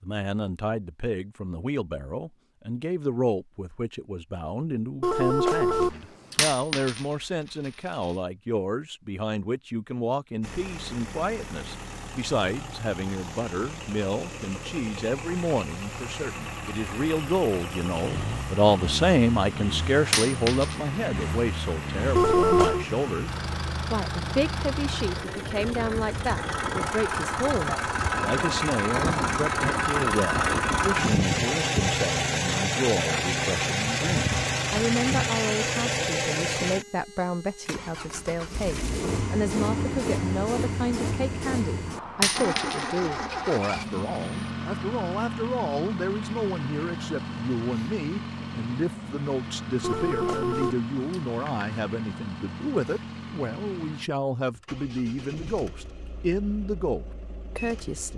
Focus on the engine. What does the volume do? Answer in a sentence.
The volume of the engine goes up, then down.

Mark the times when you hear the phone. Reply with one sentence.
The phone can be heard from 5.0 to 6.4 s, from 22.1 to 22.9 s and from 49.8 to 51.8 s.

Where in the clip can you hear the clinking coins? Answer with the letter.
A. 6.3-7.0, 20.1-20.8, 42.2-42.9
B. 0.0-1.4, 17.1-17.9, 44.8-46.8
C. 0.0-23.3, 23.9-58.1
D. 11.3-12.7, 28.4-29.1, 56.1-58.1
A.